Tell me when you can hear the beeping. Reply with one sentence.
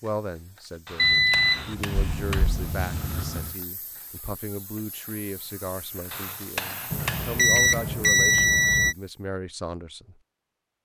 You can hear the beeping from 0.9 to 3.5 s and from 6.9 to 8.9 s.